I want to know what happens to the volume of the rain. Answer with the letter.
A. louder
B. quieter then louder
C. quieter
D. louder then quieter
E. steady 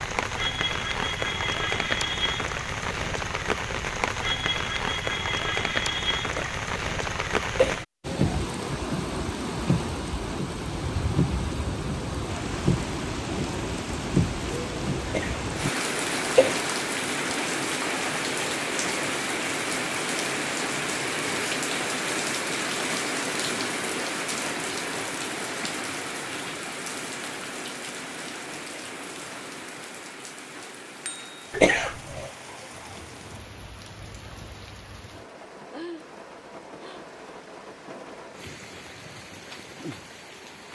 C.